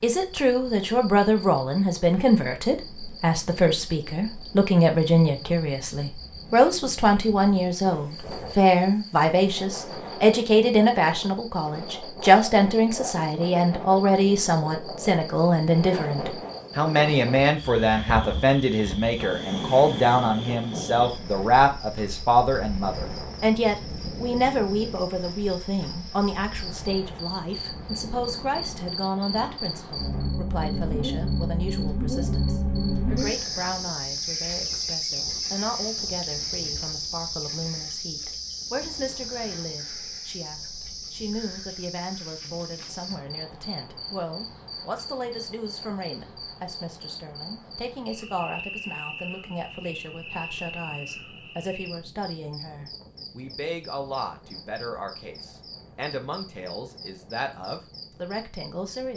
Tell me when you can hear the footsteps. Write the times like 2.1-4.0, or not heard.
not heard.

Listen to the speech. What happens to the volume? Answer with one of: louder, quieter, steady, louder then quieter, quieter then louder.
quieter.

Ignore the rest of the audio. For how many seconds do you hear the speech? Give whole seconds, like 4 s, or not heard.
59 s.